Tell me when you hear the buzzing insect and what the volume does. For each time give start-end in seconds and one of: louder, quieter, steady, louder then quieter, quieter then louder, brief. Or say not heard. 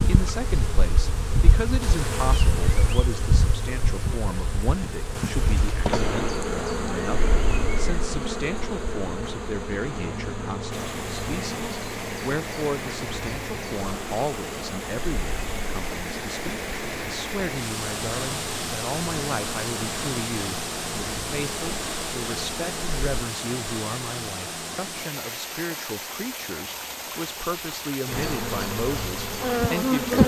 0.0-23.2 quieter
28.1-30.2 brief.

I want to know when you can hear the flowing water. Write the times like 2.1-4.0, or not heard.
10.7-30.2.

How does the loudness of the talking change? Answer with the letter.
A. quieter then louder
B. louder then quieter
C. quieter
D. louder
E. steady
E.